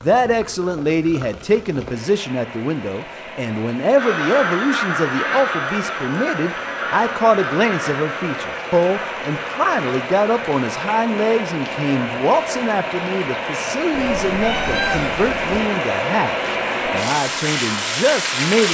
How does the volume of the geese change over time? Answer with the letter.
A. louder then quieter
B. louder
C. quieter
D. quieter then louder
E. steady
C.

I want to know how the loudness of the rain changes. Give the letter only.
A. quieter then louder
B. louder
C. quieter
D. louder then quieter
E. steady
B.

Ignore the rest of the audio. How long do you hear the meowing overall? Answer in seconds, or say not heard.
2 s.